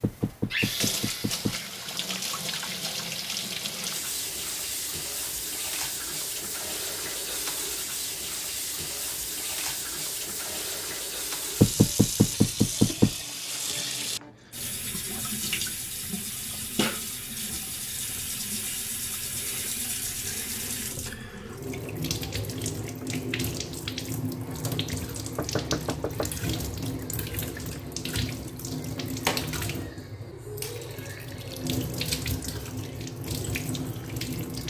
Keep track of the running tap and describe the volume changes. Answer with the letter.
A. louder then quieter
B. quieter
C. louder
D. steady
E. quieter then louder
D.